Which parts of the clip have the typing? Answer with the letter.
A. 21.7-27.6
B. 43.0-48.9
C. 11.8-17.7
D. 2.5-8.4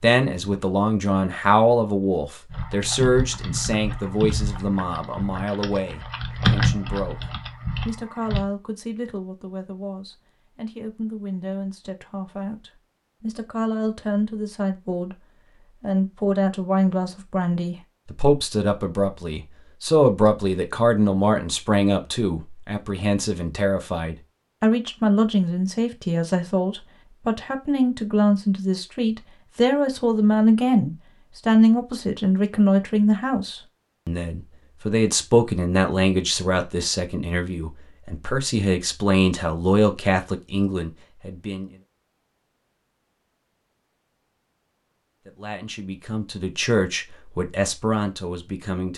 D.